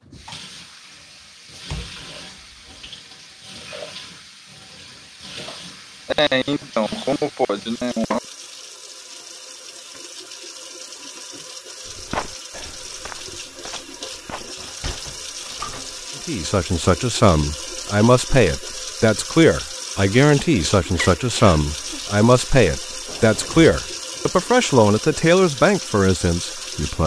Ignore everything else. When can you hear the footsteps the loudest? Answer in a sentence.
The loudest moment of the footsteps is at 12 seconds.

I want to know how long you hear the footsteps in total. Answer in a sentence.
You can hear the footsteps for 3 seconds altogether.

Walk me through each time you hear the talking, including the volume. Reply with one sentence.
You can hear the talking from 16.2 to 27.0 s, at a steady volume.